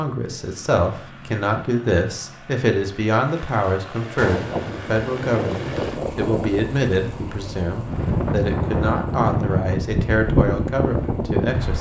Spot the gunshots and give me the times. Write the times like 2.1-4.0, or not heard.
4.2-4.7.